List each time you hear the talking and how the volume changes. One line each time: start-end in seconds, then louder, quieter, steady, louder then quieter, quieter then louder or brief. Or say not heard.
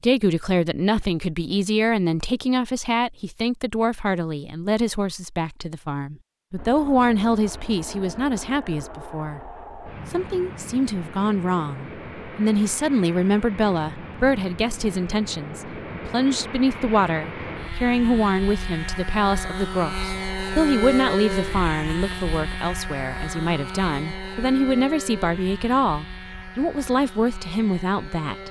0.0-28.4 steady.